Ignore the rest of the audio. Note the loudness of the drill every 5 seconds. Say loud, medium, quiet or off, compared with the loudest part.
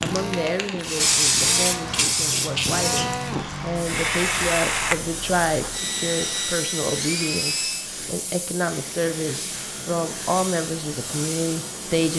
loud, loud, off.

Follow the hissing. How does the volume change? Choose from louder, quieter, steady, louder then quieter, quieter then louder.
quieter.